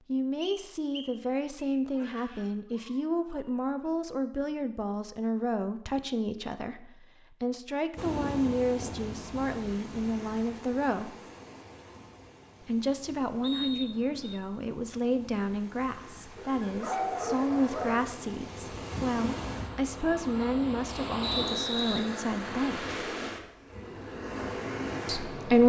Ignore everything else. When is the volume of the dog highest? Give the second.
17 s.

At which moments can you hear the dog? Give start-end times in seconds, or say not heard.
1.9-3.9, 16.4-18.1.